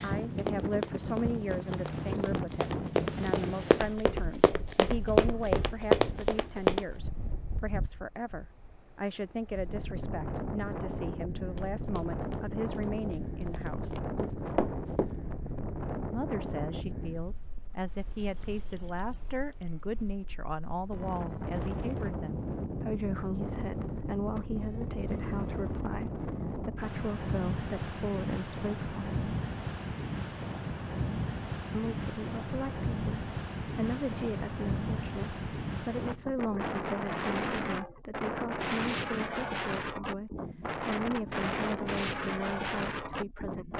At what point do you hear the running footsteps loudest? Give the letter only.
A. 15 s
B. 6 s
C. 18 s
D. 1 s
B.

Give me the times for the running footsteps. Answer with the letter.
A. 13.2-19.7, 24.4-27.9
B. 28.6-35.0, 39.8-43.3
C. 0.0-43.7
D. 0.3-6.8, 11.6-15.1
D.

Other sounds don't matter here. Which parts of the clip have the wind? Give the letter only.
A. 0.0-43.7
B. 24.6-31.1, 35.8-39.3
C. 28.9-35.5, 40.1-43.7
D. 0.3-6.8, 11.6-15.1
A.